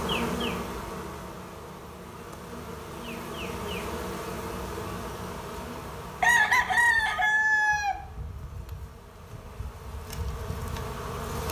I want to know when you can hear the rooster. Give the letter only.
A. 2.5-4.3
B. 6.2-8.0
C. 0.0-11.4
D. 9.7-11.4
B.